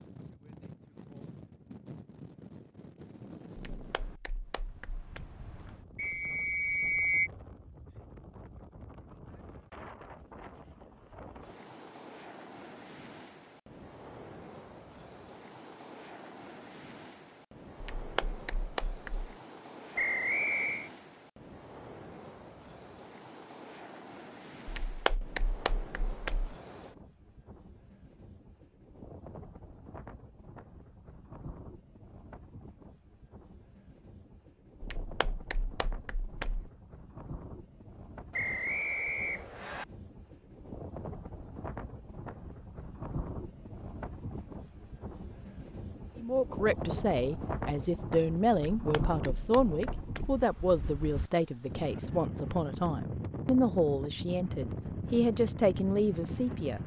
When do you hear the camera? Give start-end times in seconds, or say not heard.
not heard.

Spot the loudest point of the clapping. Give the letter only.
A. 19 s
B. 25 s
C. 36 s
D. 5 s
B.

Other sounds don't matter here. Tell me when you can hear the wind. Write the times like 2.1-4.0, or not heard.
0.0-56.8.